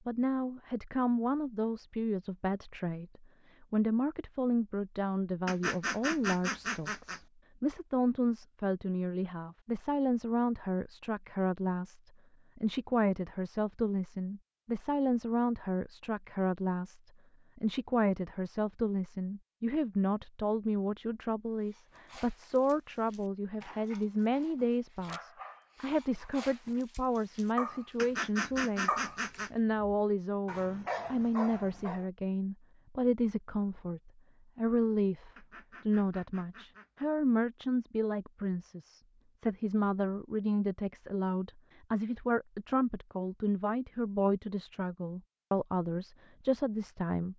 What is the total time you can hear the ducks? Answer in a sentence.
You can hear the ducks for 5 seconds altogether.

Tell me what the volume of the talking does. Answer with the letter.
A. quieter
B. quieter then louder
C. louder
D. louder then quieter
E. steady
E.